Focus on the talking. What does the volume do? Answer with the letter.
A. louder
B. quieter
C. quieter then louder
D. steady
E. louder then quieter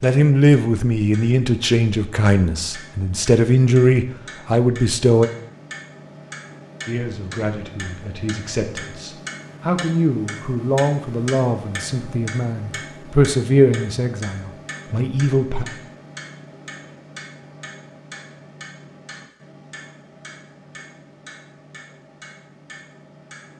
C.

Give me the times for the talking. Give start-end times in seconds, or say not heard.
0.0-5.3, 6.8-15.7.